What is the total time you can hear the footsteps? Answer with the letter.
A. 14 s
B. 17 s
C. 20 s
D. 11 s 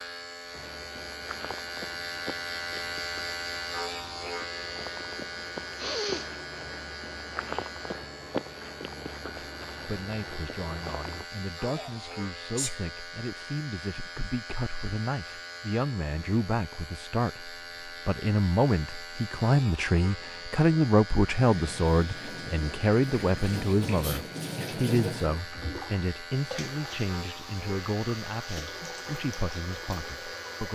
D.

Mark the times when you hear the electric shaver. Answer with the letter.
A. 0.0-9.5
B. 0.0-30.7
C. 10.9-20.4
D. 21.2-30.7
B.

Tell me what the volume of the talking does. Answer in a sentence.
The loudness of the talking goes up, then down.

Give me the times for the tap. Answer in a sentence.
The tap can be heard from 21.2 to 30.7 s.